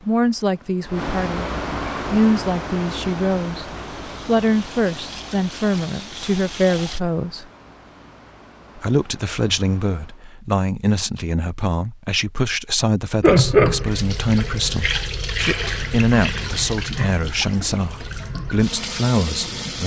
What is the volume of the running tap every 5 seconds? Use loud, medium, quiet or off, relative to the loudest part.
quiet, quiet, loud, medium.